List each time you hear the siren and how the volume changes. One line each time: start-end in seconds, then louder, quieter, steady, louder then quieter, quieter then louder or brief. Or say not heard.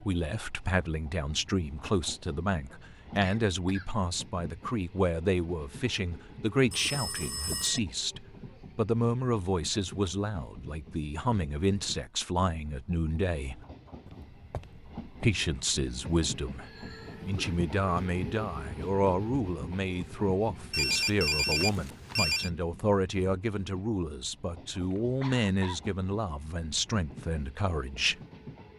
not heard.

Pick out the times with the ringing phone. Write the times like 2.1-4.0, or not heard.
6.7-7.8, 14.1-15.3, 20.7-22.5.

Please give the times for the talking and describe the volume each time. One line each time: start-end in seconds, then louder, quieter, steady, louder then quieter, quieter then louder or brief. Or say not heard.
0.0-13.6 steady
15.2-28.2 steady.